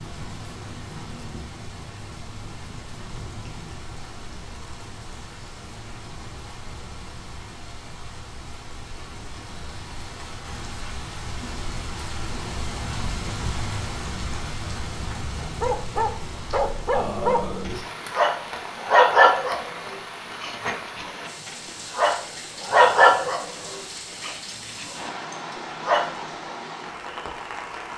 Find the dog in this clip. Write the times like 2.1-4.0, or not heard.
15.4-25.1, 25.8-26.6.